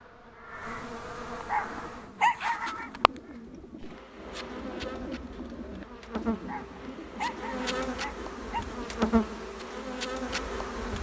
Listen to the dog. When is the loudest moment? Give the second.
2 s.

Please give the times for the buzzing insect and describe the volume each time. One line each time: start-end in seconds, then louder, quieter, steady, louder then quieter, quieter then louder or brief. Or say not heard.
0.0-10.9 louder.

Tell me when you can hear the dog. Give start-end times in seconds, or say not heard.
1.4-2.9, 6.5-8.7.